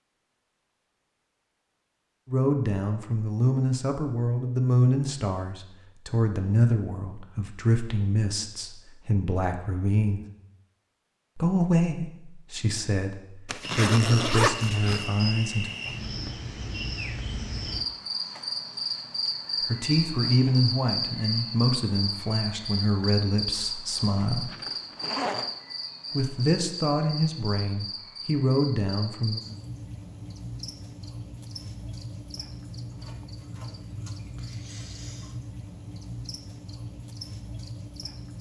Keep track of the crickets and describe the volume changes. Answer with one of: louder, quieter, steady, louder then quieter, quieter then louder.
quieter.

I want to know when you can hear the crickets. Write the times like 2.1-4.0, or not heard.
13.6-38.3.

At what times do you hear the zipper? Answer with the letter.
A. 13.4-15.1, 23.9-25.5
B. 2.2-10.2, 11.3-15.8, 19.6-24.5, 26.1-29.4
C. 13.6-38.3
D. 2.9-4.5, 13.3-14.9
A.